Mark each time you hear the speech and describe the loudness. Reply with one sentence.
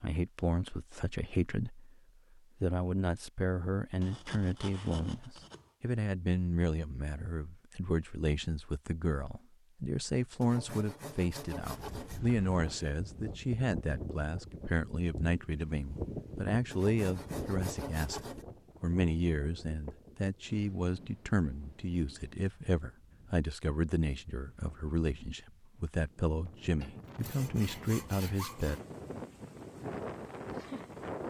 You can hear the speech from 0.0 to 28.8 s, at a steady volume.